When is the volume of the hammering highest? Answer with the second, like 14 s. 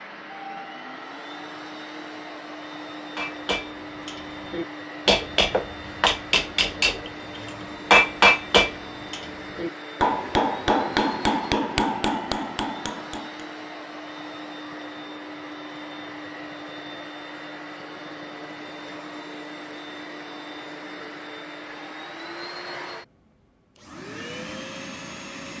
8 s.